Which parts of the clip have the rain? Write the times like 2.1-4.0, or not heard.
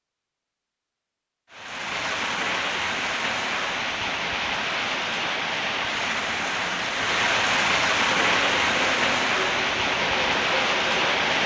1.5-11.4.